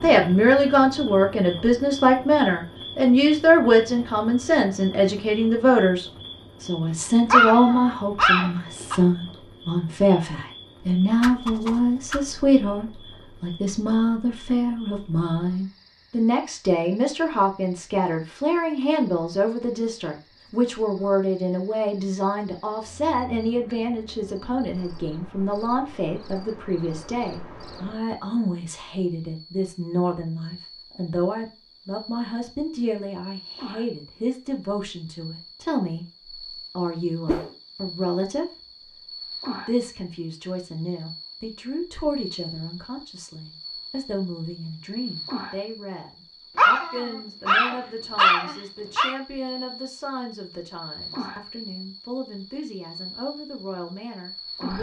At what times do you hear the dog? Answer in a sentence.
The dog can be heard from 7.3 to 8.9 s and from 46.5 to 49.1 s.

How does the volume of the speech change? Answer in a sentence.
The loudness of the speech goes down.